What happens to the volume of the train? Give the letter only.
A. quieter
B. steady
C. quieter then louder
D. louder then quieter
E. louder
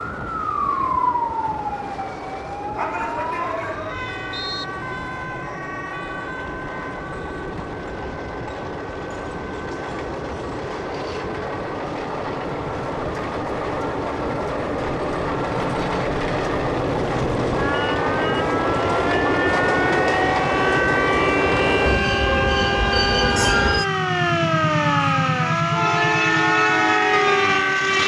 E.